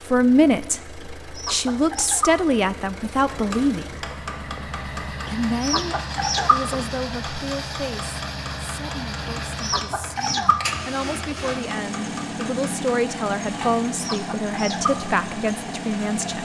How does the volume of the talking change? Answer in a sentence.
The loudness of the talking goes down, then up.